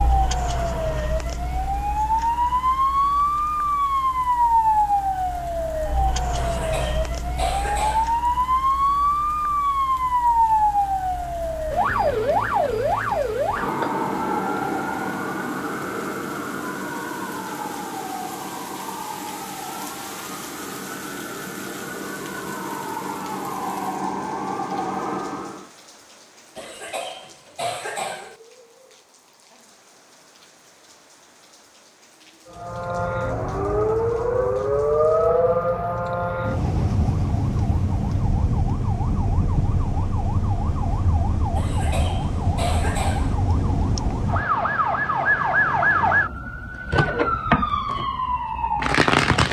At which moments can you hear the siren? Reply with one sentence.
The siren can be heard from 0.0 to 25.7 s and from 32.5 to 49.4 s.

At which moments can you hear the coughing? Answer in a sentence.
You can hear the coughing from 6.3 to 8.2 s, from 26.6 to 28.4 s and from 41.5 to 43.4 s.